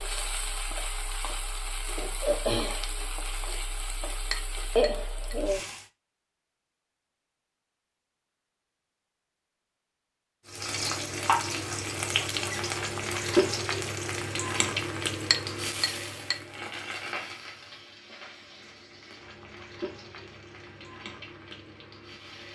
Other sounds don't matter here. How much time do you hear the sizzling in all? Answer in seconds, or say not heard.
18 s.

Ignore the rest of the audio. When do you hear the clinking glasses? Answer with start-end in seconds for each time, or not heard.
4.3-5.3, 15.3-16.4.